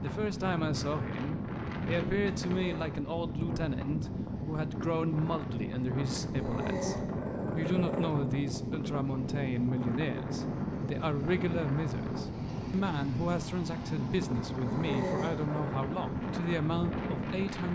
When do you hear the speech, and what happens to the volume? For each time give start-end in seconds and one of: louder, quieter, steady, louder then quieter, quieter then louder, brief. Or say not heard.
0.0-17.7 steady.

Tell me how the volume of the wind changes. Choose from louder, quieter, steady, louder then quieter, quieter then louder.
steady.